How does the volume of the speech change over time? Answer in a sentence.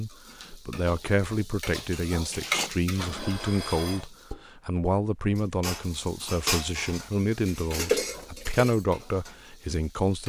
The loudness of the speech stays about the same.